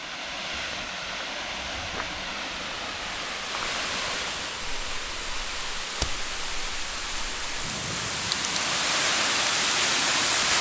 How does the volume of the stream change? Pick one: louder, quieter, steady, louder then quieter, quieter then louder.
louder.